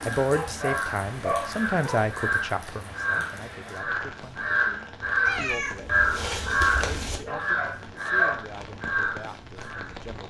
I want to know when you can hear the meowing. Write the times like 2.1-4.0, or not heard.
5.2-7.2.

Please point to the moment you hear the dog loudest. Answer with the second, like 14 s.
1 s.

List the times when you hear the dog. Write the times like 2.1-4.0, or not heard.
0.0-2.0, 7.0-8.4.